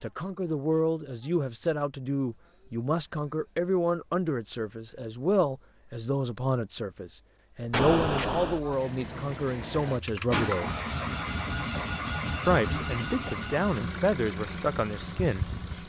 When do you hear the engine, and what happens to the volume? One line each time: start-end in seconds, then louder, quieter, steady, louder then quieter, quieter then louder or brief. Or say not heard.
8.7-15.8 louder then quieter.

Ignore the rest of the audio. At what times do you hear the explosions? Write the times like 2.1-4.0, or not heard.
7.7-8.6.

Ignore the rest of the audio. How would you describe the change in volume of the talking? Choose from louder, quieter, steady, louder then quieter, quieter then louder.
steady.